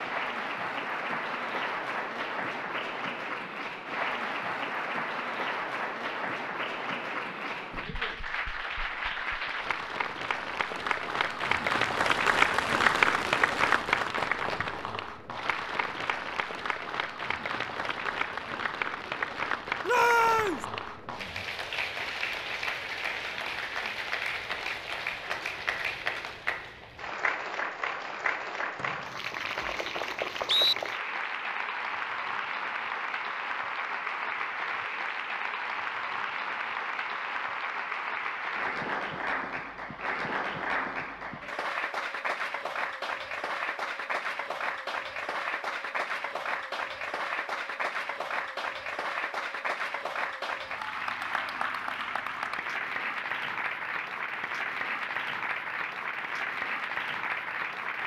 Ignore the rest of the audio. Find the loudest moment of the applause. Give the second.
13 s.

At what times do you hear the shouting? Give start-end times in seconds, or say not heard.
19.9-20.6.